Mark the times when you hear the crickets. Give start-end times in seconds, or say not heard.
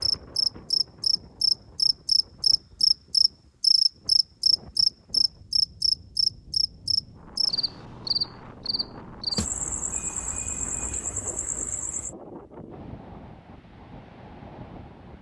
0.0-12.1.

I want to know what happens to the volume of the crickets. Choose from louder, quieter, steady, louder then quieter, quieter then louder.
quieter.